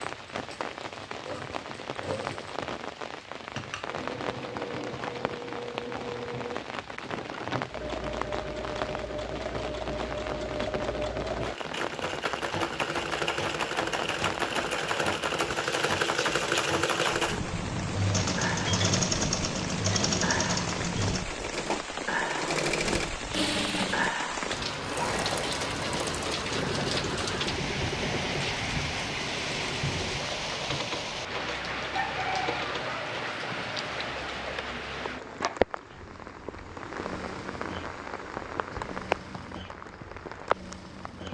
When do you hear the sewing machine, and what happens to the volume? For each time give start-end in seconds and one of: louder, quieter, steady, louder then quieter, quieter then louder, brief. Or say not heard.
0.0-41.2 louder then quieter.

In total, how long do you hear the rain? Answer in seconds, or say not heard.
41 s.